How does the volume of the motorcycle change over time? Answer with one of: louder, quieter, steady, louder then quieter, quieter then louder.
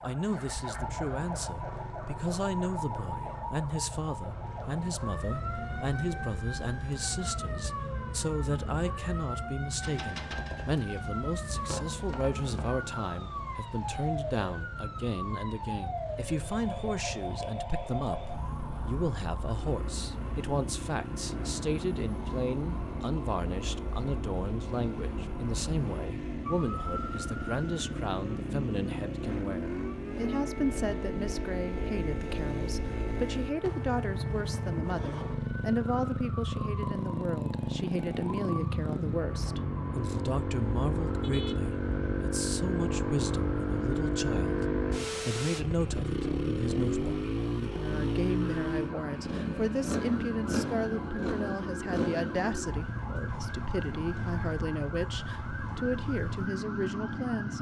louder.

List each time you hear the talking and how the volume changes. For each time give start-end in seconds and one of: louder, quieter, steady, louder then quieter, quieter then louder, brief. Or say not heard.
0.0-57.5 steady.